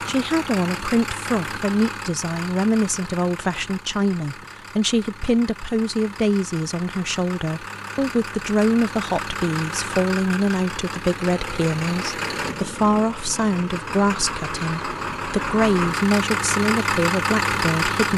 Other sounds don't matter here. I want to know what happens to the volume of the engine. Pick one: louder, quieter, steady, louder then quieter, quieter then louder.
quieter then louder.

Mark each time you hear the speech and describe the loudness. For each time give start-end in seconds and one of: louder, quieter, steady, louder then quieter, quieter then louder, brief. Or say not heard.
0.1-18.1 steady.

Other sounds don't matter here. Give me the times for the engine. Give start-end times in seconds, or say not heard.
0.0-18.1.